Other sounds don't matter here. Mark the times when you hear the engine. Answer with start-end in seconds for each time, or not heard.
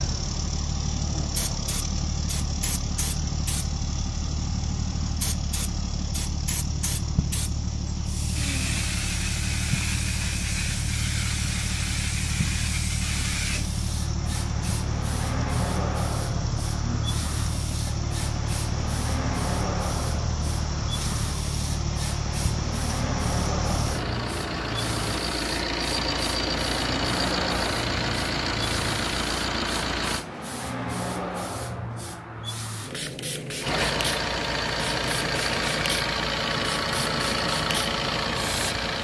0.0-30.2, 33.6-38.9.